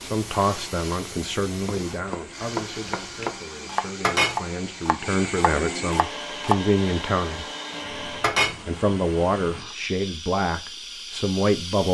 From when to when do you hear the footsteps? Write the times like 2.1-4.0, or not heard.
not heard.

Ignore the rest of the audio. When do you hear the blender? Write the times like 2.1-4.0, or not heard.
0.0-8.4.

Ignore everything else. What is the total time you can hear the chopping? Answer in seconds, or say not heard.
5 s.